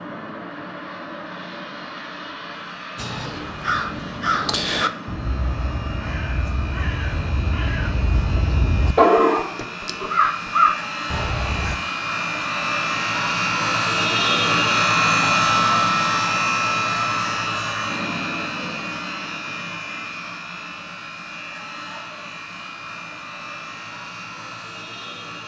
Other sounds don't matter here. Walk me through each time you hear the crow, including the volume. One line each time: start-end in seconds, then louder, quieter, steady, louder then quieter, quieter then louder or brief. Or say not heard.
3.0-11.8 quieter then louder.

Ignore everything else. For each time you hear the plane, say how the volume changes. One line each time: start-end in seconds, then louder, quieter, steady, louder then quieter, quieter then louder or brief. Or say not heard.
0.0-25.4 louder then quieter.